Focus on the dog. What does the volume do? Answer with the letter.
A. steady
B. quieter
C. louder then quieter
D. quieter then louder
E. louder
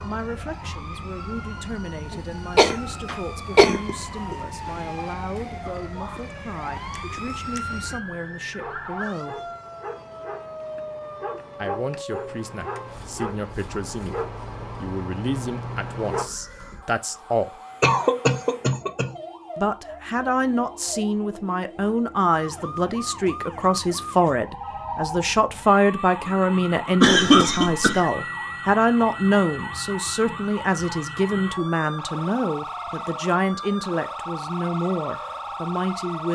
E.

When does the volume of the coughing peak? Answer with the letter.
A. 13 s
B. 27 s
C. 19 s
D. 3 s
B.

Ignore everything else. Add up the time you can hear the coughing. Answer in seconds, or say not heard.
5 s.